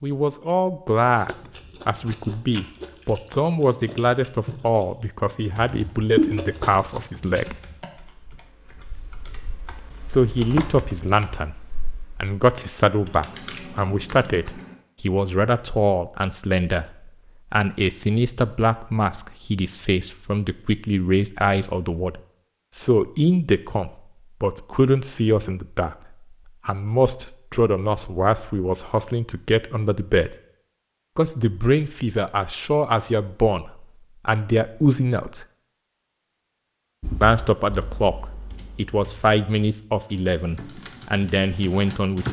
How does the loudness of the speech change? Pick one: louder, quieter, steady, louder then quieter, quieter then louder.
steady.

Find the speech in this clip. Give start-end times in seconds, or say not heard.
0.0-7.5, 10.1-25.9, 26.6-30.4, 31.1-35.5, 37.2-42.2.